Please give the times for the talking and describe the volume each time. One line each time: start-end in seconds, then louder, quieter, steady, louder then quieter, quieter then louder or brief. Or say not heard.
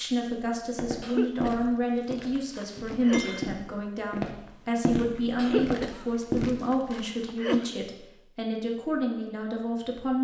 0.0-10.1 steady.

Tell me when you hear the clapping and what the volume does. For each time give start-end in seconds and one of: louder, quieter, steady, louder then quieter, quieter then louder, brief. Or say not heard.
not heard.